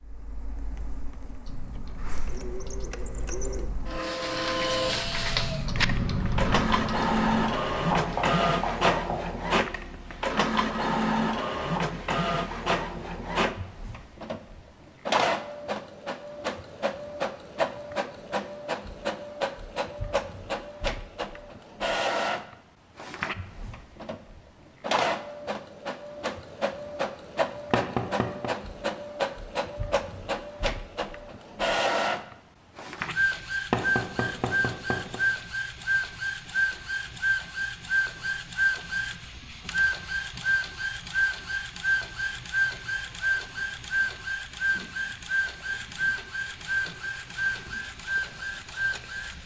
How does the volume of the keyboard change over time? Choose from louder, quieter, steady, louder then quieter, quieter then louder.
louder.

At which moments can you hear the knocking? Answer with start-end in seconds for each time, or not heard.
7.9-9.2, 27.7-28.5, 33.7-35.2.